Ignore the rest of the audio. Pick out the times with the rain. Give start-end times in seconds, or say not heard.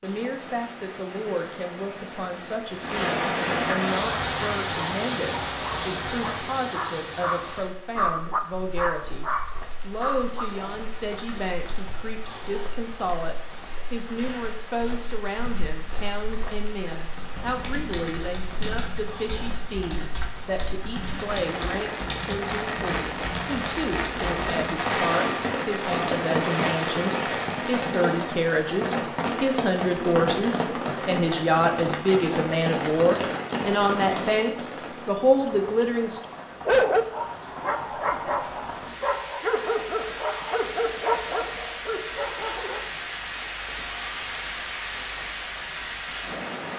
0.0-46.7.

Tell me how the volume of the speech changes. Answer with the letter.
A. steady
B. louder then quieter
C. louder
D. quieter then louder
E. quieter
C.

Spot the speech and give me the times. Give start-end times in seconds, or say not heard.
0.0-36.2.